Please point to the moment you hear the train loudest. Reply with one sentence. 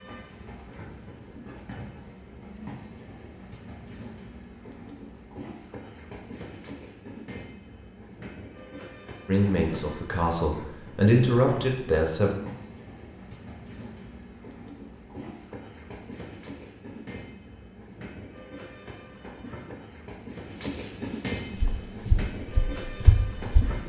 The loudest moment of the train is at 21 seconds.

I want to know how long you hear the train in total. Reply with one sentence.
You can hear the train for 24 seconds altogether.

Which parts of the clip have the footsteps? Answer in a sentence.
The footsteps can be heard from 21.5 to 23.8 s.